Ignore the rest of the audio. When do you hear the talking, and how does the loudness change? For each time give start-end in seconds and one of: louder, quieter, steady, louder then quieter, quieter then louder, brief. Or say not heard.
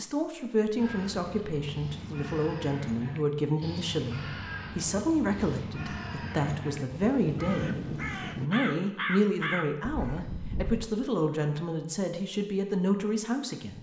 0.0-13.7 steady.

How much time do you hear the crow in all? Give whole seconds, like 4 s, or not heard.
10 s.